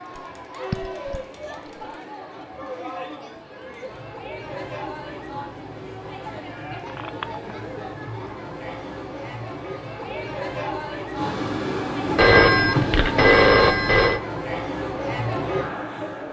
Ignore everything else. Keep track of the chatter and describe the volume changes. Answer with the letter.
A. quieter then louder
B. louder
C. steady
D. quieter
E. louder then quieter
B.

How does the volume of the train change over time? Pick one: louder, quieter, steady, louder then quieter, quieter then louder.
louder.